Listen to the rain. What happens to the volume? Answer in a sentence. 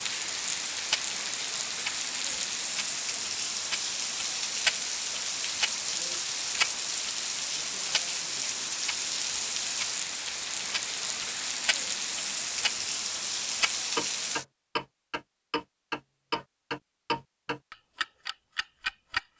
The volume of the rain stays about the same.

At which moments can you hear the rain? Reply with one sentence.
The rain can be heard from 0.0 to 14.4 s.